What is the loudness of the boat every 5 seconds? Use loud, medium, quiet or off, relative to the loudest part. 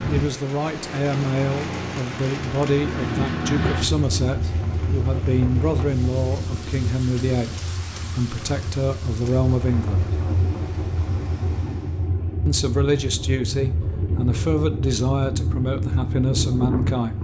loud, medium, loud, loud.